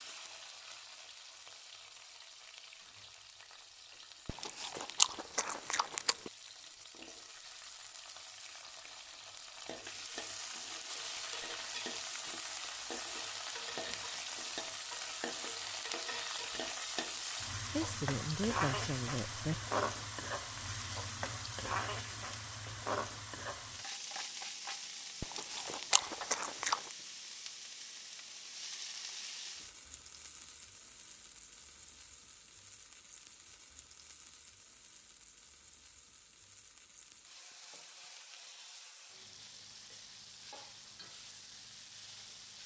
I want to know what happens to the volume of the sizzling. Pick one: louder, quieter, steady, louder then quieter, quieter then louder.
louder then quieter.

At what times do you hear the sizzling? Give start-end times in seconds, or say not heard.
0.0-42.6.